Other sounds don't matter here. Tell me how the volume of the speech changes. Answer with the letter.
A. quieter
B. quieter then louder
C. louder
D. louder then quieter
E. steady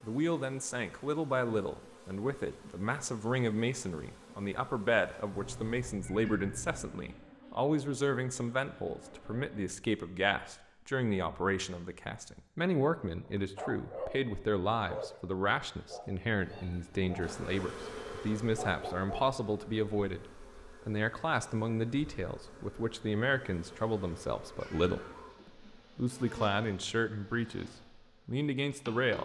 E.